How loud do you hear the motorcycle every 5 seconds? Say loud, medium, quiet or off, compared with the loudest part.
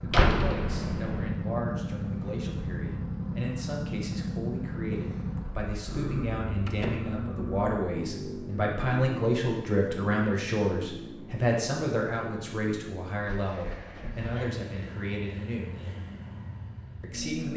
loud, loud, medium, medium.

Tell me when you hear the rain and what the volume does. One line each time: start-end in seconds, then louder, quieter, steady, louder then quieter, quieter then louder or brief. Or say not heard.
not heard.